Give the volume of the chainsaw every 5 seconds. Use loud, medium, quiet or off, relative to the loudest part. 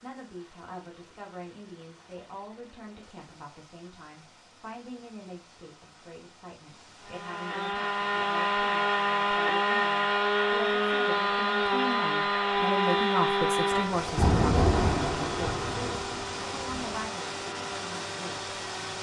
off, loud, loud, quiet.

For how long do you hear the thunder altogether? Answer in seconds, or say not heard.
3 s.